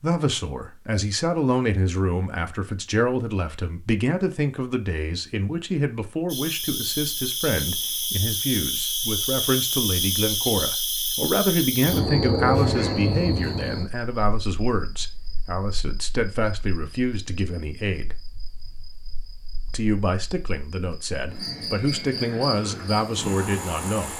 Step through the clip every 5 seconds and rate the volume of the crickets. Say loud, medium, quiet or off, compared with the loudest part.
off, loud, loud, quiet, medium.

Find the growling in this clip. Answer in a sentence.
You can't hear the growling here.